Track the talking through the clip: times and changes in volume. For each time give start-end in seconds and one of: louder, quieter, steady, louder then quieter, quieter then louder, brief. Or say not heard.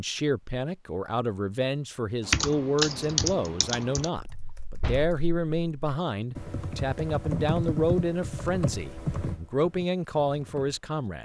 0.0-11.2 steady.